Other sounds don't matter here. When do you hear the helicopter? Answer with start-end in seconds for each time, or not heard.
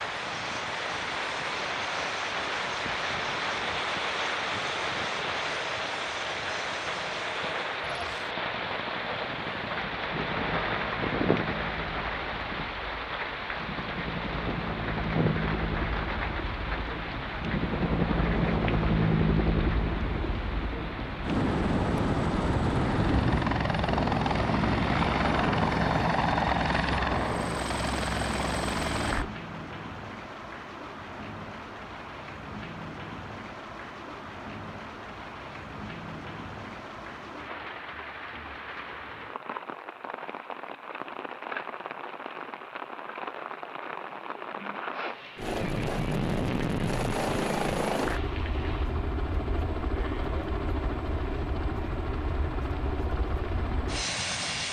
0.0-29.3, 45.4-54.6.